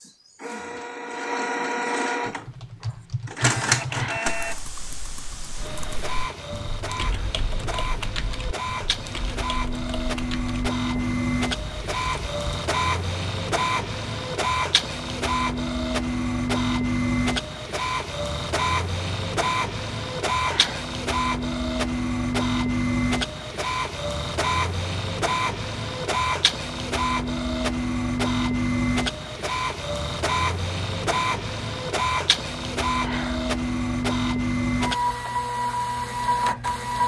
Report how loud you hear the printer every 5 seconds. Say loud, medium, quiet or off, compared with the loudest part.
loud, medium, loud, loud, loud, loud, loud, loud.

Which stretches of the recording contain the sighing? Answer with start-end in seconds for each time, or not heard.
3.9-4.3, 20.4-20.9, 33.0-33.5.